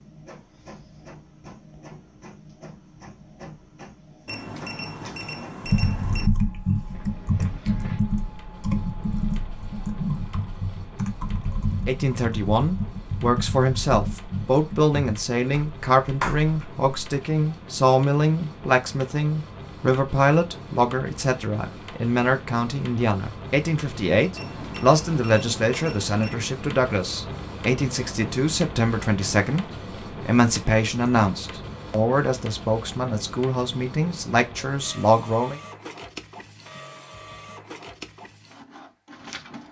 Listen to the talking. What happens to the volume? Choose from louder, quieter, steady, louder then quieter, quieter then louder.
steady.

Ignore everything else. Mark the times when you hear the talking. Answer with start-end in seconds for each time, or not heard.
11.8-29.6, 30.2-35.6.